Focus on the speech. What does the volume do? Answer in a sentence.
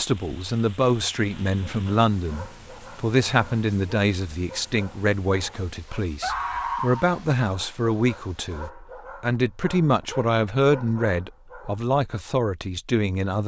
The loudness of the speech stays about the same.